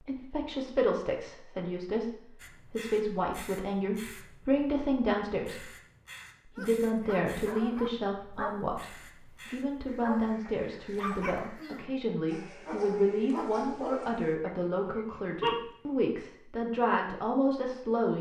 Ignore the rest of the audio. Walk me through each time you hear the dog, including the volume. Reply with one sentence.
The dog can be heard from 6.5 to 15.7 s, at a steady volume.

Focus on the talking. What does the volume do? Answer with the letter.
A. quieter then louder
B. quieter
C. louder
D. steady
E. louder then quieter
D.